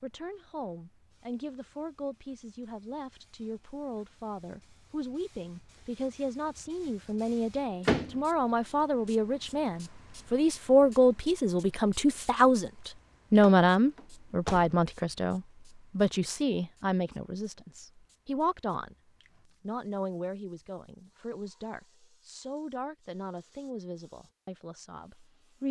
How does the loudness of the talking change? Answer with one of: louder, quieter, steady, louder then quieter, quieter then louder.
louder then quieter.